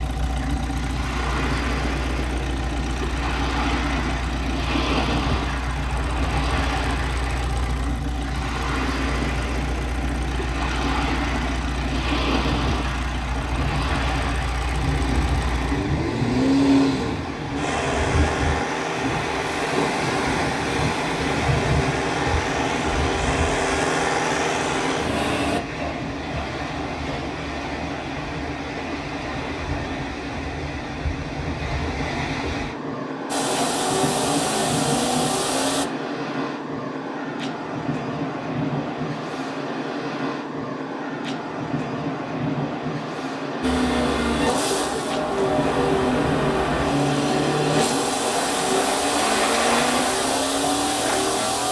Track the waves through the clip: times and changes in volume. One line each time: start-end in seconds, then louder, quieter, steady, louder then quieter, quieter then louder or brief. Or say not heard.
0.0-51.6 steady.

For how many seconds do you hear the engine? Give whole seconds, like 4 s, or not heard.
36 s.